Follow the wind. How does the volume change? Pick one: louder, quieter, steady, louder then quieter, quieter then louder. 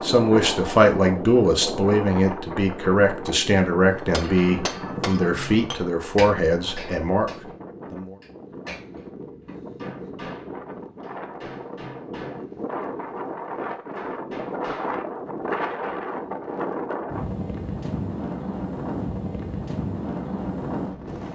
quieter then louder.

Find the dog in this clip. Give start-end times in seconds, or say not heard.
not heard.